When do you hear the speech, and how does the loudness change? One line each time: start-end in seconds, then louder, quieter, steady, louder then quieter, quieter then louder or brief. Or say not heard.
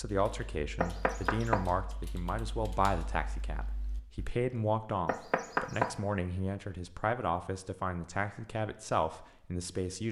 0.0-10.0 steady.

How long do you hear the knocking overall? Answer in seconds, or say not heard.
2 s.